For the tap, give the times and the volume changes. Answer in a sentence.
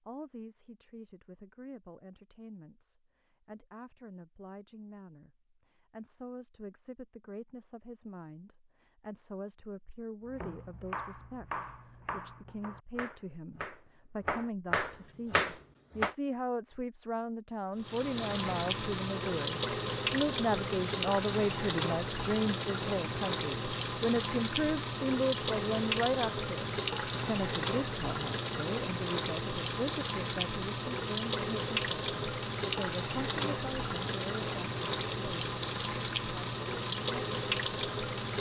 You can hear the tap from 17.8 to 38.3 s, at a steady volume.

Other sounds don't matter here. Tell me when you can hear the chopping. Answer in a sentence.
The chopping can be heard from 10.2 to 16.1 s.